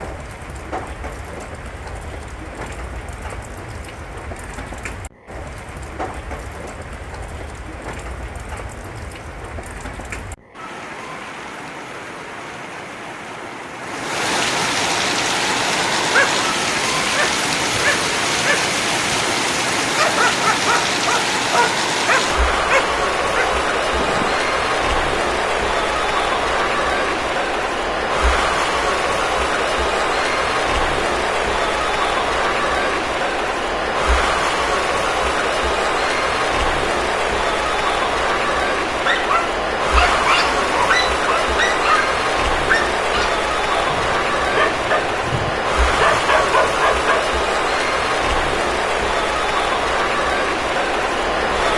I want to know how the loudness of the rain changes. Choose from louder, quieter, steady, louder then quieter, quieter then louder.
louder.